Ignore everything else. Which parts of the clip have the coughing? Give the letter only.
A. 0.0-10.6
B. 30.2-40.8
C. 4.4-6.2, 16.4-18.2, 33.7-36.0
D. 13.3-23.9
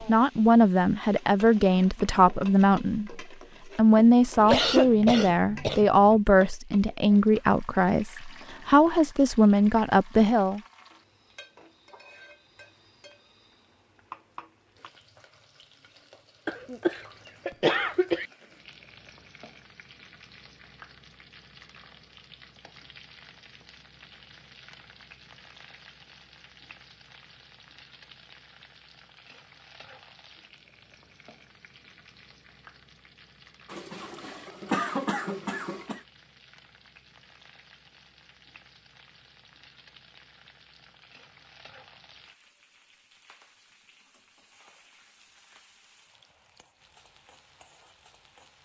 C.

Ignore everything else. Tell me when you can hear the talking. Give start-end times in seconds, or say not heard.
0.0-10.6.